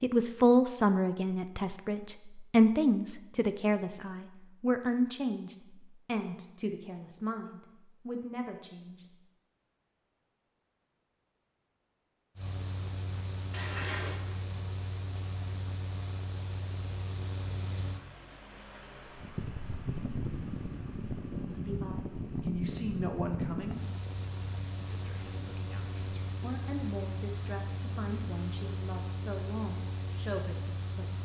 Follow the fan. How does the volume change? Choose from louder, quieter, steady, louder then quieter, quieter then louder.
louder then quieter.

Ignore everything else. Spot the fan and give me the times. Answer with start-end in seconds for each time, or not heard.
12.3-31.2.